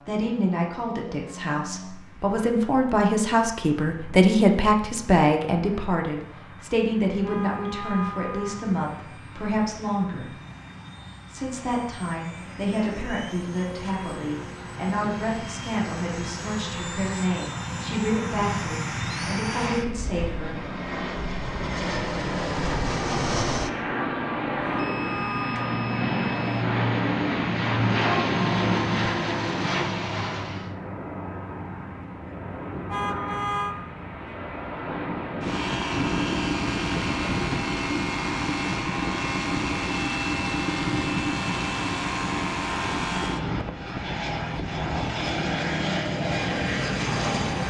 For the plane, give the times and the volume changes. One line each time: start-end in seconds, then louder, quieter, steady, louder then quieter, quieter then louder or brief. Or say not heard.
0.0-47.6 louder.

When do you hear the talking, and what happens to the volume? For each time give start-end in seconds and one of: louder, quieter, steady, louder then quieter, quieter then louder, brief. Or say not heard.
0.1-10.3 louder then quieter
11.3-20.6 steady.